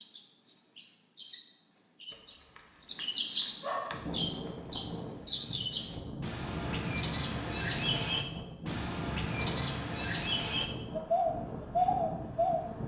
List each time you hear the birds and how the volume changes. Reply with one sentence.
The birds can be heard from 0.0 to 12.7 s, getting louder.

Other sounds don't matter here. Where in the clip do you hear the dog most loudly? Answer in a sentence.
The loudest moment of the dog is at 4 seconds.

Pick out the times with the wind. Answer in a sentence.
You can hear the wind from 3.9 to 12.8 s.